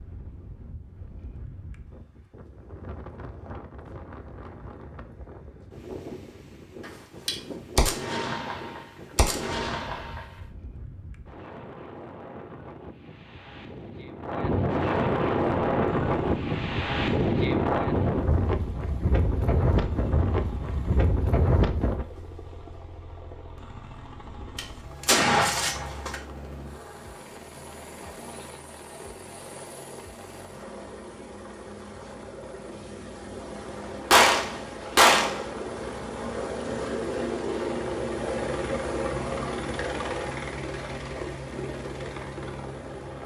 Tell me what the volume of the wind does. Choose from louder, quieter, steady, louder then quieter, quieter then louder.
louder.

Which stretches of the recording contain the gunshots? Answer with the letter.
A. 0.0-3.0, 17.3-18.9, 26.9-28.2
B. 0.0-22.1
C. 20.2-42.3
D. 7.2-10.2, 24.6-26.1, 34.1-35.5
D.